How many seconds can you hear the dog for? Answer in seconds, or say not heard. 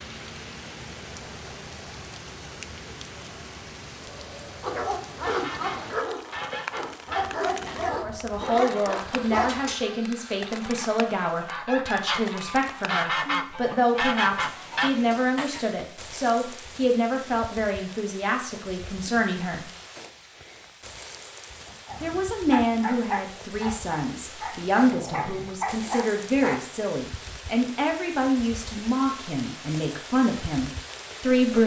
10 s.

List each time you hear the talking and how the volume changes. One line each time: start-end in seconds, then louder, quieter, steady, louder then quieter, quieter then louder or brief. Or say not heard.
8.0-19.6 steady
22.0-31.6 steady.